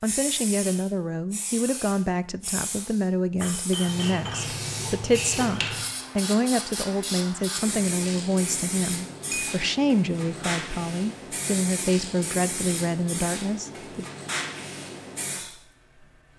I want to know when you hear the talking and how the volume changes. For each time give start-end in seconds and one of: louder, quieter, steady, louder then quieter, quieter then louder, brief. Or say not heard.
0.0-14.1 steady.